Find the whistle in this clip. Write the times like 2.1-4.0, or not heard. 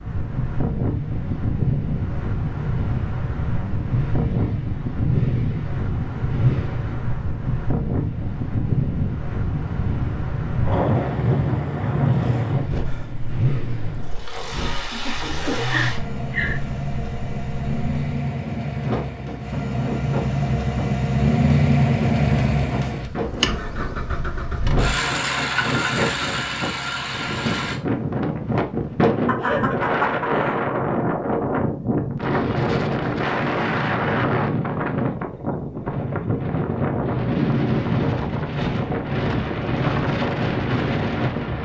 not heard.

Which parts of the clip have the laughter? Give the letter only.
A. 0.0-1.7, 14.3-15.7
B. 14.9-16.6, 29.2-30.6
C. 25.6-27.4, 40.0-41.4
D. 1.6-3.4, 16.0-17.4
B.